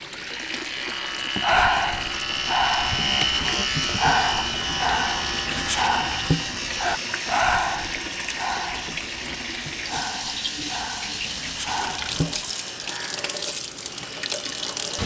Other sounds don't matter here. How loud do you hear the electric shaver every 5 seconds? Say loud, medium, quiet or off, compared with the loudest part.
loud, medium, medium.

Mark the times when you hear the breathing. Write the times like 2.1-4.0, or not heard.
1.4-12.4.